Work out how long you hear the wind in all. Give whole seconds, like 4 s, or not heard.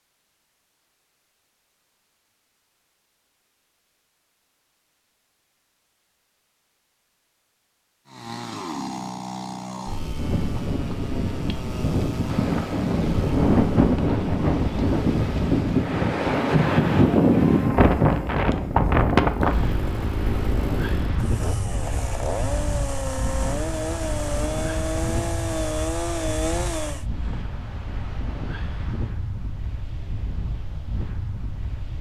22 s.